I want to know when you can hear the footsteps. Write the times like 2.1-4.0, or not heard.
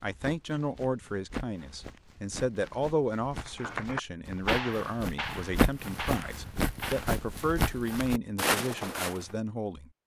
0.0-9.2.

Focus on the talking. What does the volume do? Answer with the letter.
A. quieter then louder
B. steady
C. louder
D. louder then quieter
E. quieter
B.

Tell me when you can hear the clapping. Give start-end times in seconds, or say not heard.
3.6-7.1.